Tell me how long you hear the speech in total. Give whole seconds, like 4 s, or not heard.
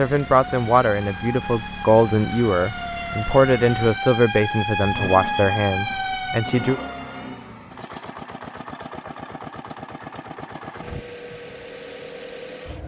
7 s.